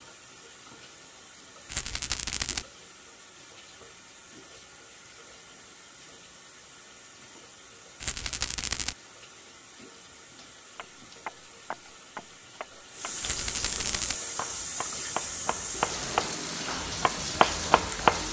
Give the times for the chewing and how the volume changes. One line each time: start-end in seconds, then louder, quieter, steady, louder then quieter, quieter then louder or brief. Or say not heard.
not heard.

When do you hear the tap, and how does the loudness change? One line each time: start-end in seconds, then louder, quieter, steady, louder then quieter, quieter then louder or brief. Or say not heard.
0.0-18.2 louder.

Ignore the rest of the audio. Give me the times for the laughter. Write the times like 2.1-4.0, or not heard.
not heard.